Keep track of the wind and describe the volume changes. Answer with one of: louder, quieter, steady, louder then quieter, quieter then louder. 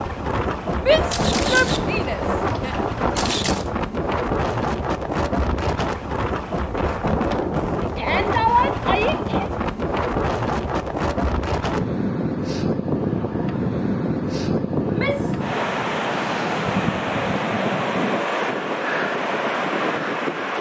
steady.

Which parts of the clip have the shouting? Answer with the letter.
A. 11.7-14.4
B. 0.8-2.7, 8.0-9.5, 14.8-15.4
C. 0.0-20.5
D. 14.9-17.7
B.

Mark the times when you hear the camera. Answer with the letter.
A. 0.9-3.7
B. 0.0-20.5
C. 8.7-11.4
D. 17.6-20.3
A.